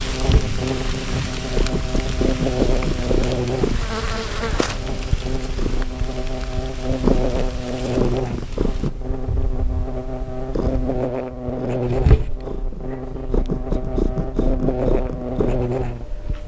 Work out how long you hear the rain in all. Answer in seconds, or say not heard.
9 s.